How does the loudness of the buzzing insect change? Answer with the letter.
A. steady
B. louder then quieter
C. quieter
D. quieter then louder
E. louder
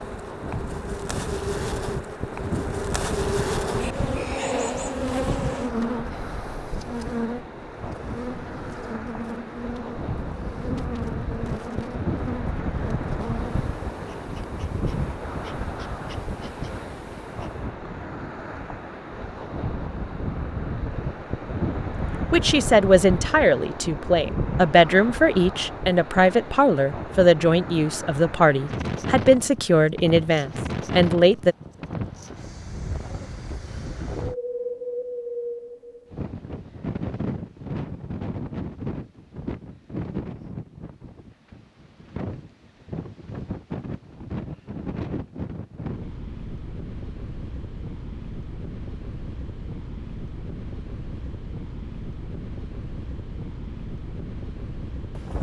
C.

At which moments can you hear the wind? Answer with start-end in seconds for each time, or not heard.
0.0-55.3.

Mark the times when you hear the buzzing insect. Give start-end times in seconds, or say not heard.
0.0-17.7.